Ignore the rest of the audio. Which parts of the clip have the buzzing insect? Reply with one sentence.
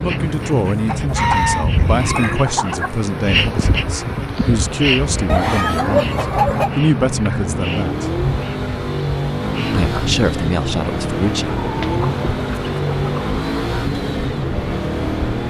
You can hear the buzzing insect from 0.0 to 15.4 s.